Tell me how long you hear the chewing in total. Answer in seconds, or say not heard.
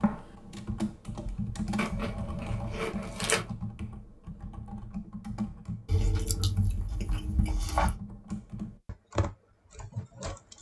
4 s.